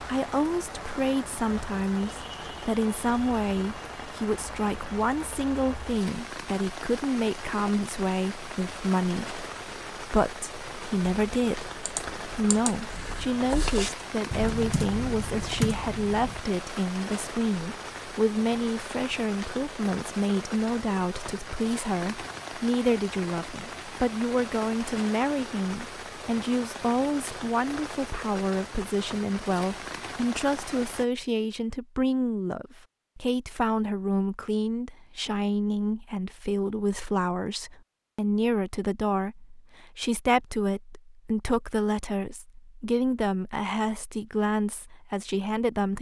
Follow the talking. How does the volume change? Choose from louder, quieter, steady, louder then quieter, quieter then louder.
steady.